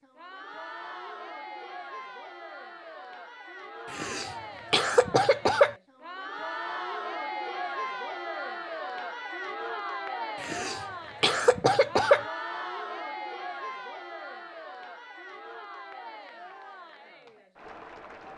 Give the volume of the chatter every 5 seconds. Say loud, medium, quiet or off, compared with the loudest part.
medium, loud, loud, medium.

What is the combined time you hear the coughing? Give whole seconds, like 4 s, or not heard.
4 s.